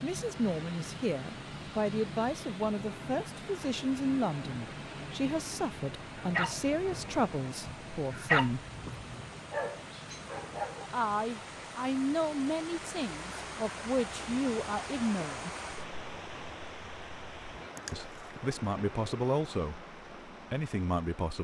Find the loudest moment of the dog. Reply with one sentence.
The volume of the dog peaks at 8 seconds.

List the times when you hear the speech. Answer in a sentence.
You can hear the speech from 0.0 to 8.7 s, from 10.9 to 15.5 s and from 17.9 to 21.3 s.